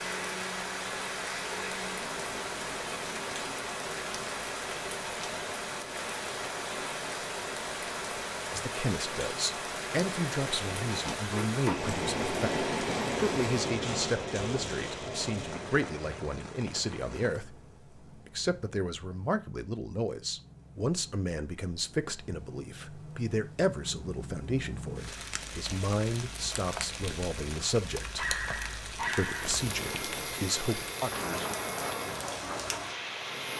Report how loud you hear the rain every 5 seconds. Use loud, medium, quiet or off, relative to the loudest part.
loud, loud, loud, medium, medium, loud, loud.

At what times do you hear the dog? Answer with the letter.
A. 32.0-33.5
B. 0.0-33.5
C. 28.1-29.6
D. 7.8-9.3
C.